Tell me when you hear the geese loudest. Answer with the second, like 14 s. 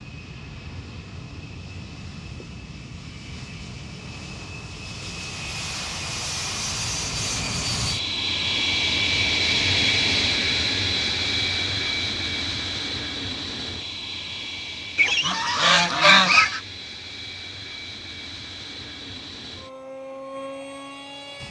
16 s.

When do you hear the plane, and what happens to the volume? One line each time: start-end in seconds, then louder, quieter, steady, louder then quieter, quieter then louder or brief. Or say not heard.
0.0-21.4 louder then quieter.